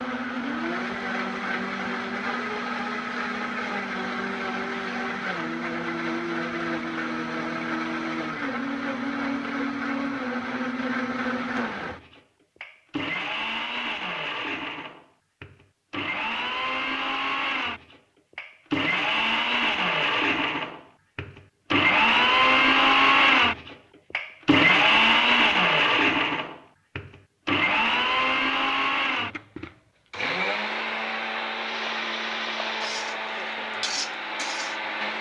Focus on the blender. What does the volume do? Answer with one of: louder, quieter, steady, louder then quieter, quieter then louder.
louder then quieter.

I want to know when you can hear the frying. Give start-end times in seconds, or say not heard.
31.5-34.8.